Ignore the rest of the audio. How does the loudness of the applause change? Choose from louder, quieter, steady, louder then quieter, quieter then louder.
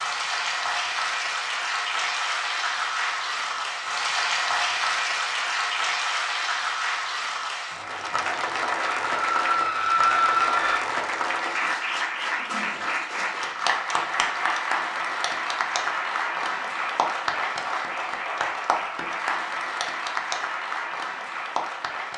steady.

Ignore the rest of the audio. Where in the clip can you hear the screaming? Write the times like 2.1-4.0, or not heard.
9.1-10.8.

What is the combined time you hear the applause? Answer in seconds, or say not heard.
22 s.